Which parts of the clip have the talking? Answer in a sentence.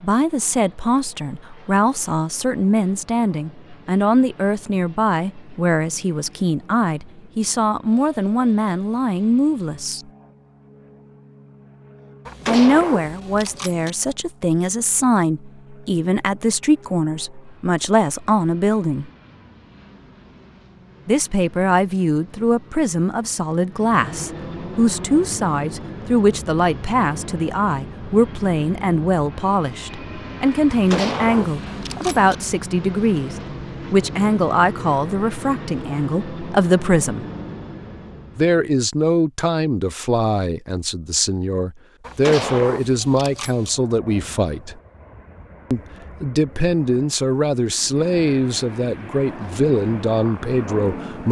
The talking can be heard from 0.0 to 10.0 s, from 12.4 to 19.1 s, from 21.1 to 37.2 s, from 38.4 to 44.8 s and from 45.7 to 51.2 s.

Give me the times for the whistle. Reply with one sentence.
You can't hear the whistle here.